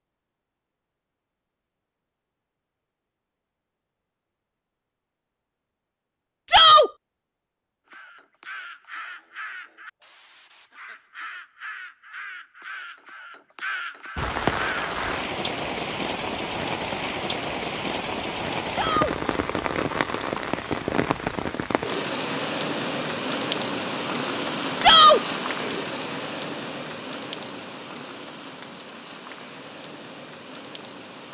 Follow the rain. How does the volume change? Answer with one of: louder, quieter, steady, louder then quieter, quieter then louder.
quieter.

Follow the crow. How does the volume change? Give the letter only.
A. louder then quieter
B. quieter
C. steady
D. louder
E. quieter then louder
E.